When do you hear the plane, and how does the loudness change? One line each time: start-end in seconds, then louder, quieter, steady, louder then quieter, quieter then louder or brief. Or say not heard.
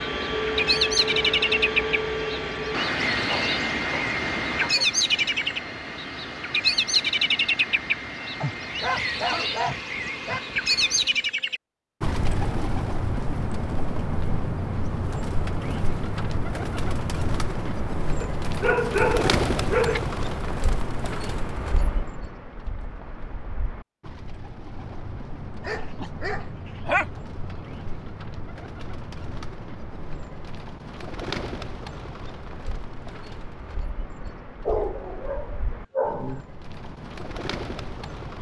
0.0-11.4 quieter.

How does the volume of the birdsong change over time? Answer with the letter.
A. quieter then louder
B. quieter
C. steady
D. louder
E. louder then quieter
B.